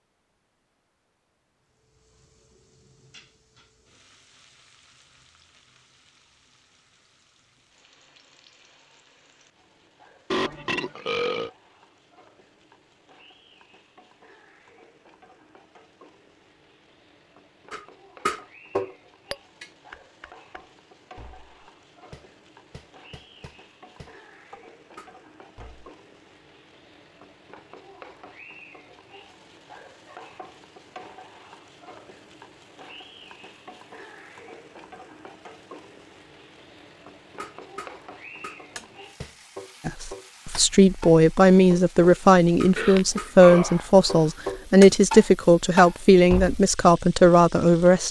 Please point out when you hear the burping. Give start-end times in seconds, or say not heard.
10.3-11.5, 42.8-44.4.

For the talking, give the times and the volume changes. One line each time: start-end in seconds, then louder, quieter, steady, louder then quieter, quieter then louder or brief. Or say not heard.
39.9-48.0 steady.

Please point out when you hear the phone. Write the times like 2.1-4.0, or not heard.
not heard.